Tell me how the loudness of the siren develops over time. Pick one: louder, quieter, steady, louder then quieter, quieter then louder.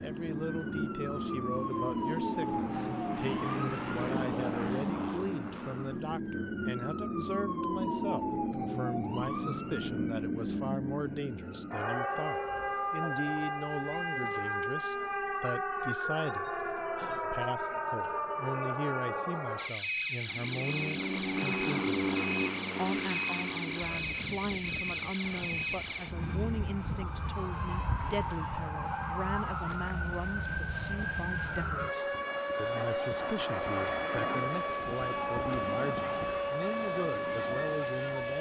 steady.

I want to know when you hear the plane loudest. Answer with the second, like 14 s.
22 s.